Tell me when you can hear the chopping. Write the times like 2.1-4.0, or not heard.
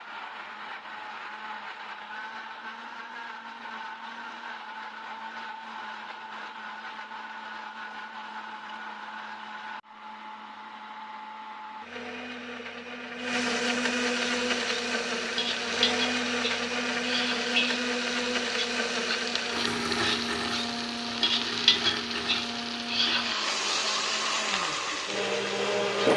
not heard.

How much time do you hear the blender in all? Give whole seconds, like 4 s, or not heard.
26 s.